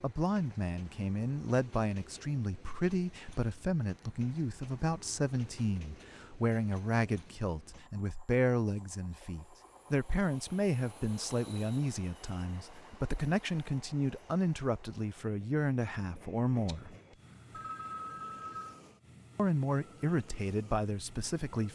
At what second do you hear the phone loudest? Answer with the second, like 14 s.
18 s.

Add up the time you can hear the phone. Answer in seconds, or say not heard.
2 s.